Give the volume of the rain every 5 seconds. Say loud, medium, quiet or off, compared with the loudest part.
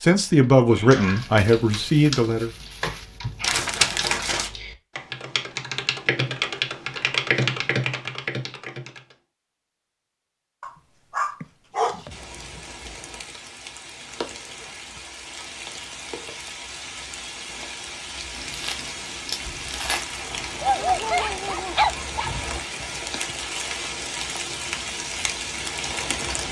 off, off, medium, medium, loud, loud.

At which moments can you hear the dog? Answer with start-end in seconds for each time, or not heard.
0.9-3.5, 10.6-12.6, 20.6-22.4.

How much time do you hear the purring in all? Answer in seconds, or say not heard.
not heard.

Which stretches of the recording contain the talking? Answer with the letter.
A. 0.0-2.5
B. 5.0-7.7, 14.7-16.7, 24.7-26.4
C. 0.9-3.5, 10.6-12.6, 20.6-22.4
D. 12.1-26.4
A.